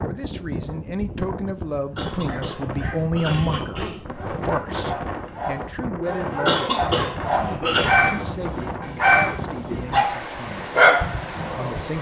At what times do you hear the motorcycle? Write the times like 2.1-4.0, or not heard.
not heard.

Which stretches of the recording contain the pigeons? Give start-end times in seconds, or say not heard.
not heard.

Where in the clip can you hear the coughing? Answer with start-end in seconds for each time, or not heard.
1.9-4.0, 6.5-8.0.